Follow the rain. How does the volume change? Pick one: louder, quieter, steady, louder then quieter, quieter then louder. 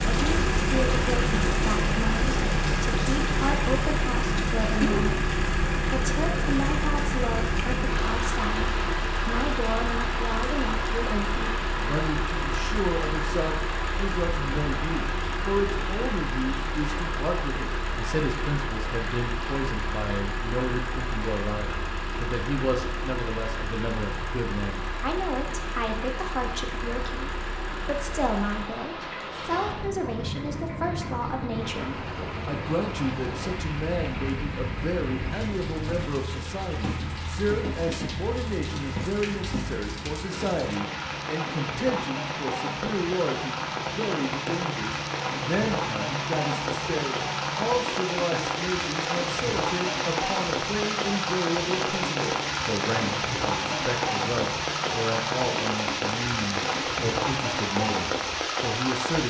quieter then louder.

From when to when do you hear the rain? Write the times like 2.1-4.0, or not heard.
0.0-59.2.